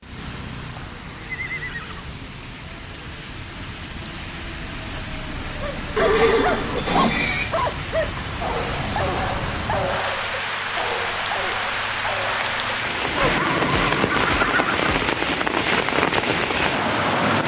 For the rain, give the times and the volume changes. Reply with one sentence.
You can hear the rain from 0.0 to 17.4 s, getting louder.